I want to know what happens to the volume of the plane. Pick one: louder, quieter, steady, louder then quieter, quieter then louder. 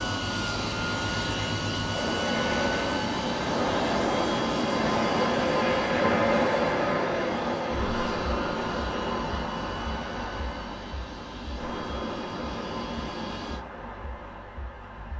quieter.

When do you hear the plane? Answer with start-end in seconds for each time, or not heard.
0.0-13.7.